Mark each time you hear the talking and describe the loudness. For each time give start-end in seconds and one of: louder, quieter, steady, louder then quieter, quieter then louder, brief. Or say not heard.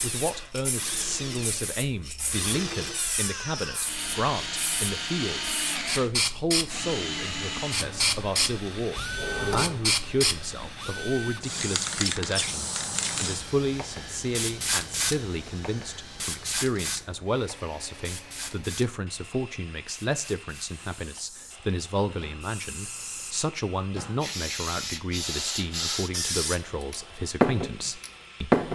0.0-28.6 steady.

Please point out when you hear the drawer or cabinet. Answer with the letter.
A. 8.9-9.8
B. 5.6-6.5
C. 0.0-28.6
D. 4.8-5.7
A.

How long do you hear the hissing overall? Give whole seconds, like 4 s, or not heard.
29 s.